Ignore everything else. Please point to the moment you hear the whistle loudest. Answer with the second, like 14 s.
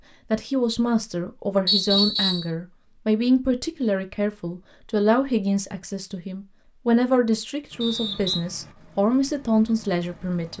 2 s.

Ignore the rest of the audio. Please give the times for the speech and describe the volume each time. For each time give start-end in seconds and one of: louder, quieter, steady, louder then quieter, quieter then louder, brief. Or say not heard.
0.3-10.5 steady.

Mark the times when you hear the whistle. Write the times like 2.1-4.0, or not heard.
1.6-2.5, 7.8-8.4.